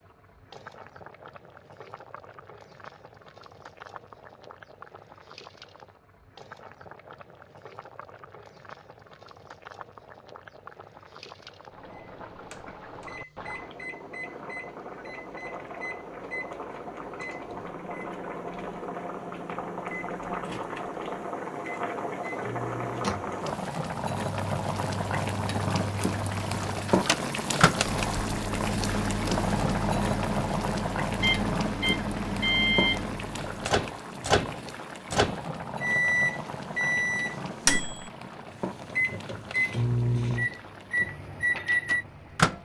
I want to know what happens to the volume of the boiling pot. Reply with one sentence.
The loudness of the boiling pot goes up, then down.